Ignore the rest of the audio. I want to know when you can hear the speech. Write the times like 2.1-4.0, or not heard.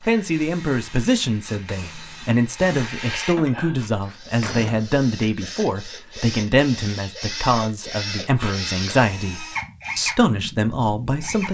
0.0-11.4.